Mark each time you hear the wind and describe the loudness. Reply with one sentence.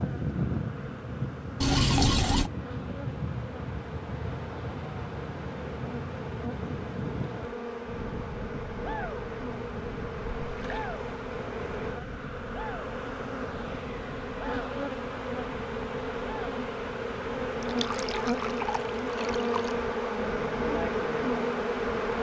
The wind can be heard from 0.0 to 22.1 s, getting quieter.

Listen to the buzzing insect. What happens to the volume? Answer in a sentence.
The volume of the buzzing insect goes up.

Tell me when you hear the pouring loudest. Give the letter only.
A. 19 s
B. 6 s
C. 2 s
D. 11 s
C.